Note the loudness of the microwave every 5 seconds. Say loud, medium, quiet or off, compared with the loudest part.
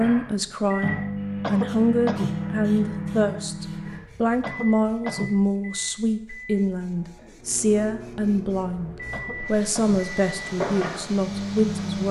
loud, medium, loud.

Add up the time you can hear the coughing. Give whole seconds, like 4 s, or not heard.
3 s.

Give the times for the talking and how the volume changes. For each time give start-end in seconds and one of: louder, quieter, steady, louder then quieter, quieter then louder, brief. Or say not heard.
0.0-12.0 steady.